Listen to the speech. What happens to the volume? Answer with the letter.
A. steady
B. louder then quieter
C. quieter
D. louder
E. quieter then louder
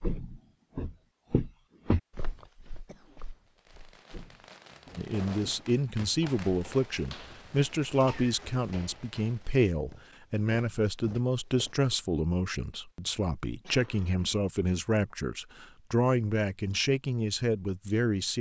A.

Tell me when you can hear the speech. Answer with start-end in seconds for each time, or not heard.
5.0-18.3.